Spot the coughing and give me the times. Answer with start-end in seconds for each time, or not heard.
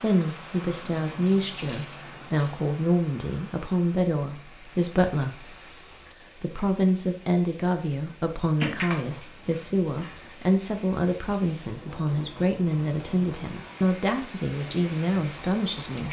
not heard.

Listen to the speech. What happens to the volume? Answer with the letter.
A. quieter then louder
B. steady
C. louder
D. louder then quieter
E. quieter
B.